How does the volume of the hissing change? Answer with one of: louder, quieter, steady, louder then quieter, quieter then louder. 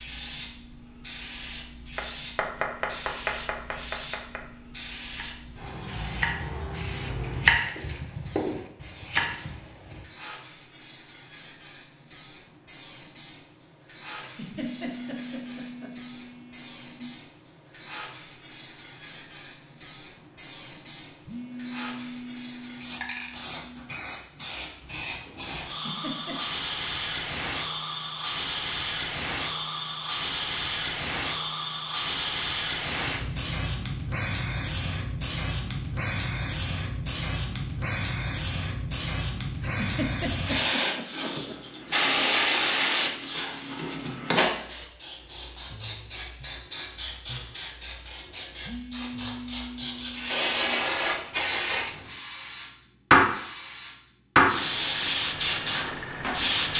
louder.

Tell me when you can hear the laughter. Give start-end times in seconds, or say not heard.
14.2-15.9, 25.6-26.4, 39.6-41.5.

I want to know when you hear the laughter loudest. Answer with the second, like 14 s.
40 s.